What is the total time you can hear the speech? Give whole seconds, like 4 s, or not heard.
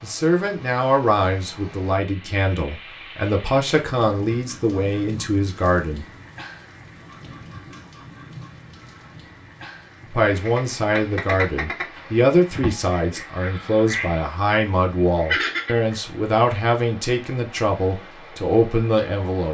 15 s.